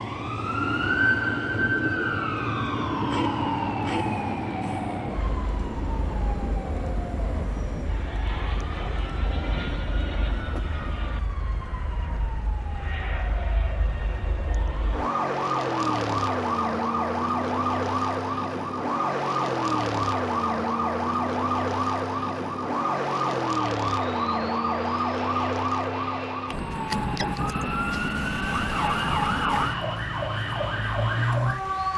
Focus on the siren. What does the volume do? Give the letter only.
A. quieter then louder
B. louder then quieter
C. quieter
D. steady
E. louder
A.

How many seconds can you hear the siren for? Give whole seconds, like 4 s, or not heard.
32 s.